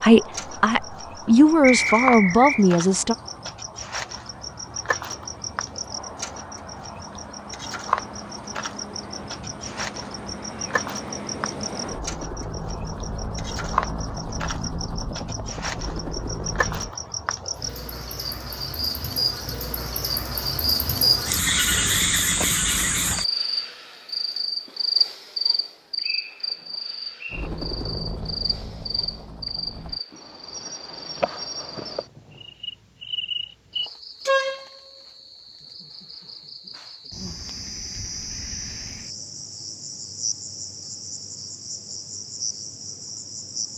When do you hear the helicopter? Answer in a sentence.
The helicopter can be heard from 0.1 to 16.9 s and from 27.3 to 30.0 s.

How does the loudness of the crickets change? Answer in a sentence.
The volume of the crickets goes up, then down.